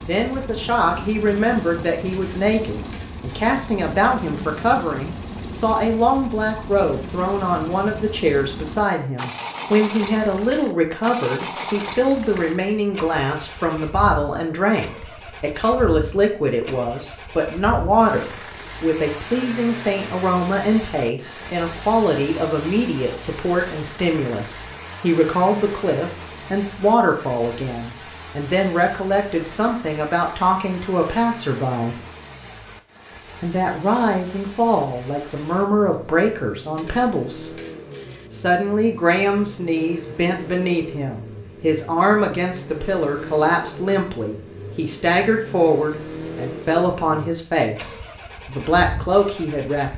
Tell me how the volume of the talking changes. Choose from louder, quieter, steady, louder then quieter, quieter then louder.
steady.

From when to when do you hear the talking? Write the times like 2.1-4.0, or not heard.
0.0-31.9, 33.4-37.5, 38.3-49.9.